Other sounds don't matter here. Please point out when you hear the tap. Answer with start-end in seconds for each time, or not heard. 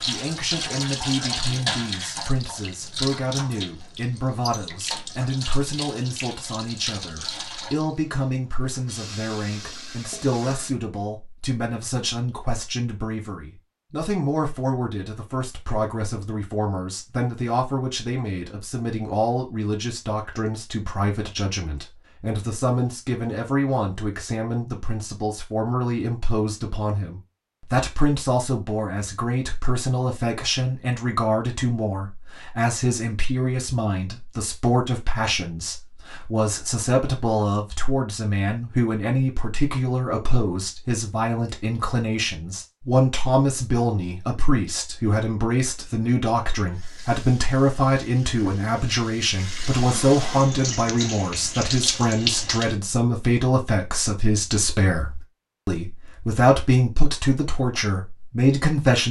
0.0-10.7, 46.5-52.8.